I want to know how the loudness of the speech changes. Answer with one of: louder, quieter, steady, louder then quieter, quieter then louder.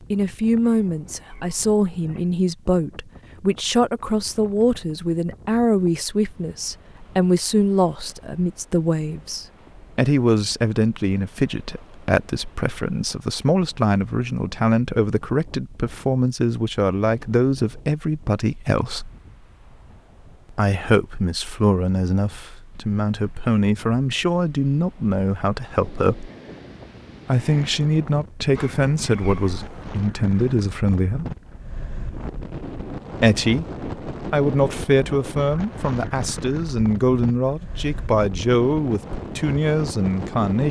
steady.